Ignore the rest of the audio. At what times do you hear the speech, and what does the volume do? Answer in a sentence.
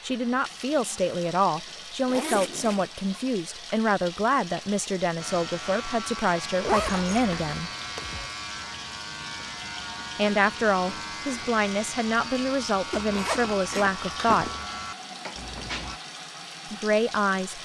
You can hear the speech from 0.0 to 7.7 s, at a steady volume; from 10.2 to 14.5 s, at a steady volume; and briefly from 16.7 to 17.6 s.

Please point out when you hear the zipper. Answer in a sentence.
The zipper can be heard from 2.0 to 2.9 s, from 6.6 to 8.3 s and from 12.9 to 14.7 s.